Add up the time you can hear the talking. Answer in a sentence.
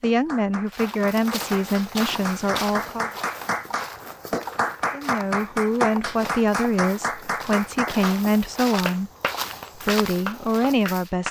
You can hear the talking for 9 seconds altogether.